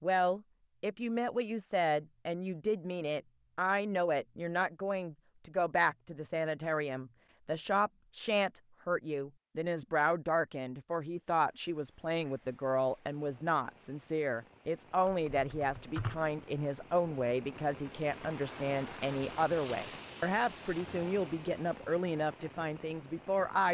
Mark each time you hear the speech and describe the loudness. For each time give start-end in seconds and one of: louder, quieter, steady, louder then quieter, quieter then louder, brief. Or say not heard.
0.0-23.6 steady.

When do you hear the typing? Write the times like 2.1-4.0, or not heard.
15.1-16.3.